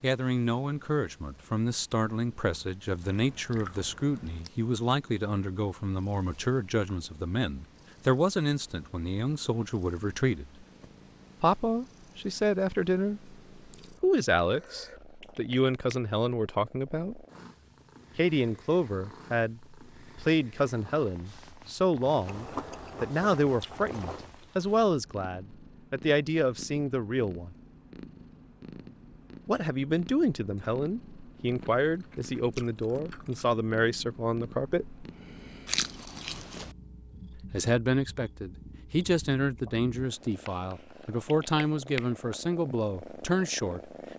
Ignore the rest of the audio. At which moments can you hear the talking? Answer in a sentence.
The talking can be heard from 0.0 to 10.5 s, from 11.4 to 13.3 s, from 14.0 to 17.2 s, from 18.1 to 27.6 s, from 29.4 to 35.0 s and from 37.4 to 43.9 s.